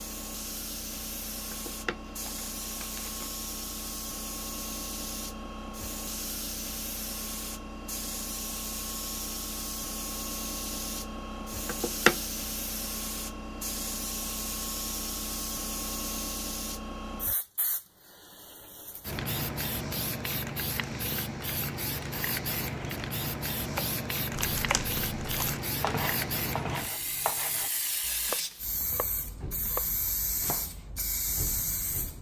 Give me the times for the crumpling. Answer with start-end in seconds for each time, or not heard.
1.5-3.3, 11.7-12.2, 24.3-25.6.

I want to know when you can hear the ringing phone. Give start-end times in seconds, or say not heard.
not heard.